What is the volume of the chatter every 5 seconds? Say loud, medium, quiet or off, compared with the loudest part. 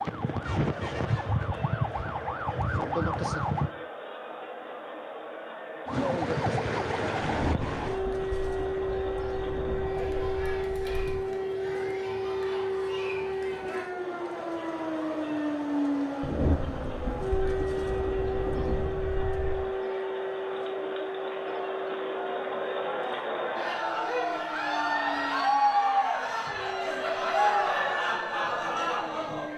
quiet, quiet, quiet, quiet, medium, loud.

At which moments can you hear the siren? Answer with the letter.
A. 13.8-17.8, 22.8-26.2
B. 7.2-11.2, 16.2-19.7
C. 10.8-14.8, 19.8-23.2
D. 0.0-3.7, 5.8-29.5
D.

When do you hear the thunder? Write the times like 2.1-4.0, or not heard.
7.2-11.2, 16.2-19.7.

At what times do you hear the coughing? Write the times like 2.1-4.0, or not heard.
not heard.